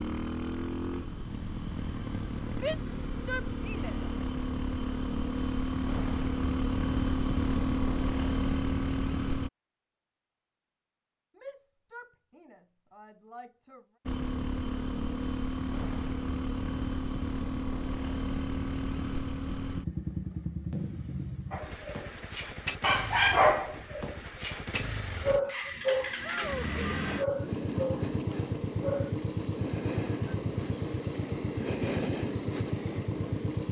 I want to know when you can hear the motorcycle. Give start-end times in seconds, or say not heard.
0.0-9.5, 14.1-33.6.